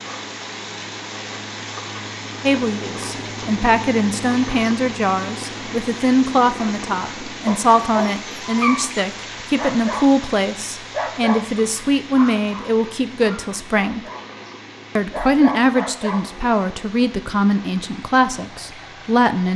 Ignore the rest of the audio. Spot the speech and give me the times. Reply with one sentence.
The speech can be heard from 2.4 to 14.0 s and from 14.9 to 19.5 s.